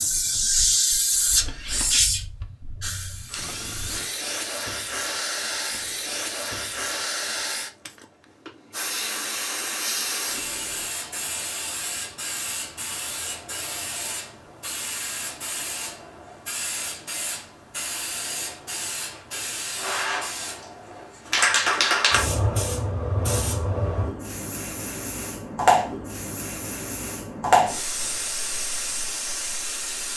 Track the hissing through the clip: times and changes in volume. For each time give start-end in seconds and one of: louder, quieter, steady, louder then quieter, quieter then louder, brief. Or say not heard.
0.0-30.1 quieter then louder.